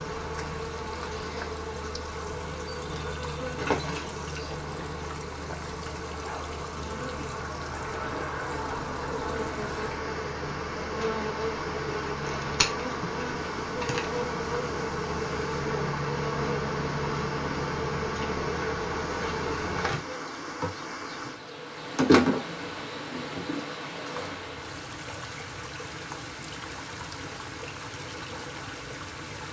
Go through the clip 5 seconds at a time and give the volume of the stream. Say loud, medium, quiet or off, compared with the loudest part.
medium, loud, loud, loud, loud, loud.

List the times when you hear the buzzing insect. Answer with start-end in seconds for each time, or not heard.
0.0-24.4.